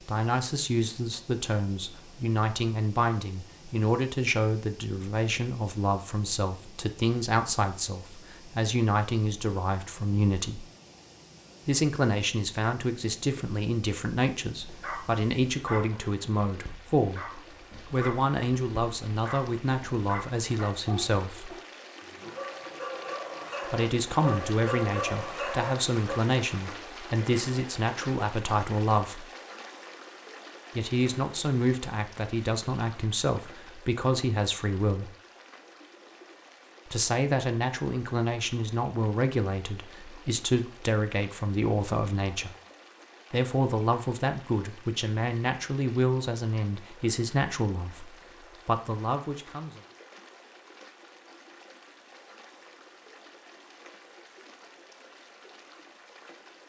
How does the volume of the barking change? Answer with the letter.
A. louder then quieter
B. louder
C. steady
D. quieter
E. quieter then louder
B.